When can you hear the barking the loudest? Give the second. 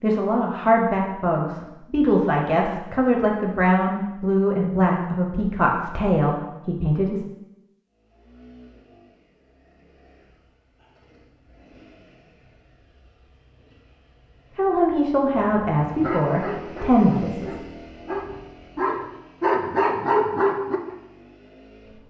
20 s.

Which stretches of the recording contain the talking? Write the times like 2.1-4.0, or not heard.
0.0-7.2, 14.6-17.6.